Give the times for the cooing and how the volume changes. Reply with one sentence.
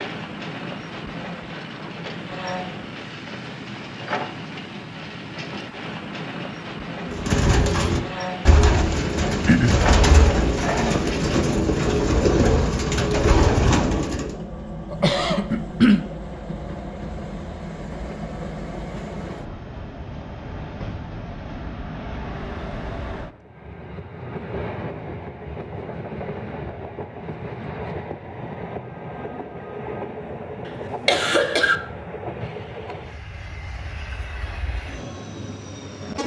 The cooing can be heard from 7.0 to 14.3 s, at a steady volume.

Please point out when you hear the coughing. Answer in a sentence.
You can hear the coughing from 9.4 to 9.8 s, from 14.9 to 16.0 s and from 30.6 to 31.8 s.